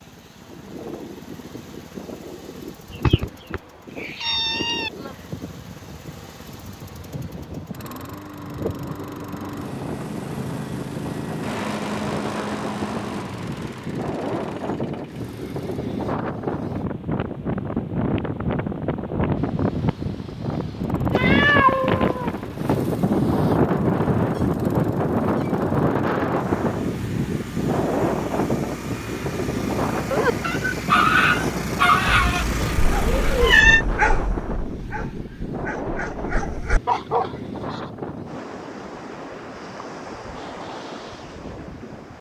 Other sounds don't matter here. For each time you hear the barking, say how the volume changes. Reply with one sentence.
The barking can be heard from 29.9 to 37.9 s, getting quieter then louder.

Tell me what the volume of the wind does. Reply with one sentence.
The loudness of the wind goes up, then down.